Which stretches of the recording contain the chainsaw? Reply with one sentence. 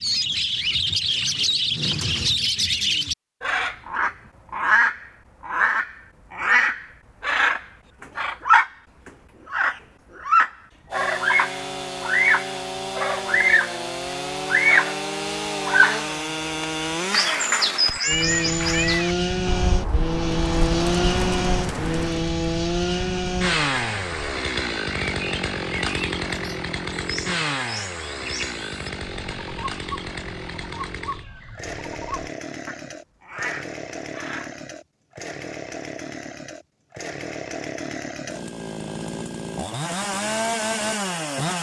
The chainsaw can be heard from 10.9 to 41.5 s.